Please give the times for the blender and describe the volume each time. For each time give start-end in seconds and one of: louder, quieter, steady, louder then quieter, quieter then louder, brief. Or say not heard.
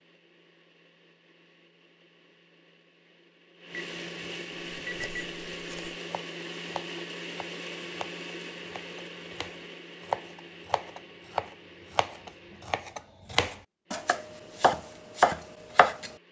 0.0-16.2 louder then quieter.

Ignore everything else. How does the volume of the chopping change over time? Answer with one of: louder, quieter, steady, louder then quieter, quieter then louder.
louder.